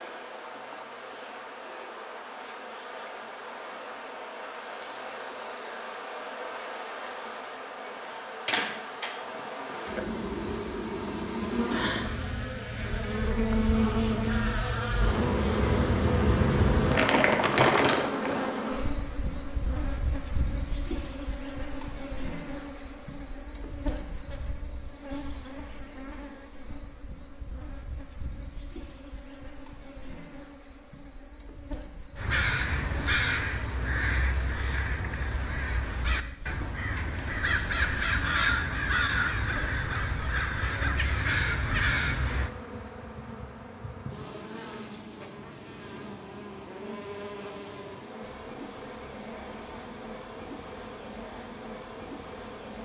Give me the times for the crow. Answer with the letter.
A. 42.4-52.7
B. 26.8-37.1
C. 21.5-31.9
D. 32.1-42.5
D.